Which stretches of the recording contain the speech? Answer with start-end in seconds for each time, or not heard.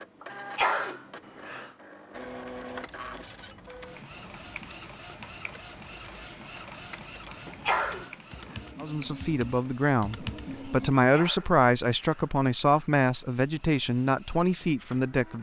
8.8-15.3.